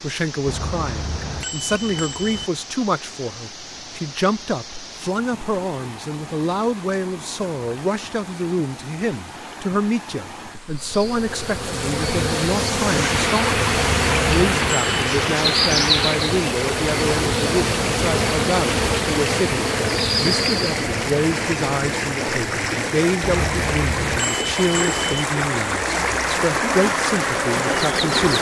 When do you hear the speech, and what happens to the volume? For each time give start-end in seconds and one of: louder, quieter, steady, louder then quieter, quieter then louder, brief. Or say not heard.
0.0-28.3 steady.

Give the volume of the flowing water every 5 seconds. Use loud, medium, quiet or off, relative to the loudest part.
quiet, quiet, loud, loud, loud, loud.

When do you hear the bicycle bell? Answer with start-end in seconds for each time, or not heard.
0.5-2.5, 13.7-15.2, 23.2-25.2.